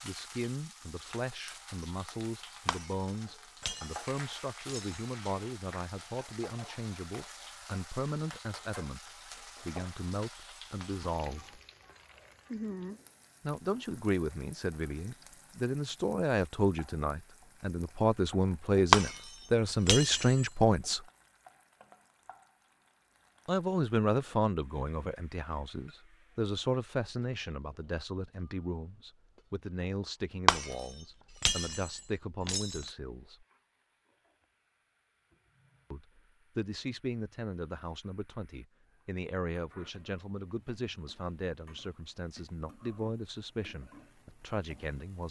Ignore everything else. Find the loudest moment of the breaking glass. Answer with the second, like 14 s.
19 s.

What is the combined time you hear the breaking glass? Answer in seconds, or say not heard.
7 s.